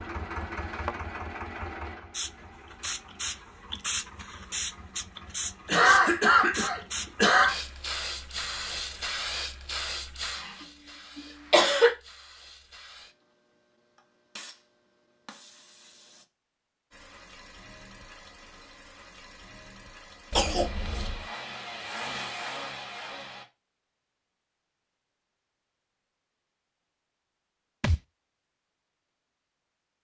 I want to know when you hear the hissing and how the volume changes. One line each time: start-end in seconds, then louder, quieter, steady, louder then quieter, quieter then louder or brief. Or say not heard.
2.1-16.2 quieter.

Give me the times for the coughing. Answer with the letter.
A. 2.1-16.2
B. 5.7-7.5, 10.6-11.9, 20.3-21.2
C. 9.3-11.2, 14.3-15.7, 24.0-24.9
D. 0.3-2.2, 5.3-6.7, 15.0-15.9
B.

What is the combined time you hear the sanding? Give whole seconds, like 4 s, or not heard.
not heard.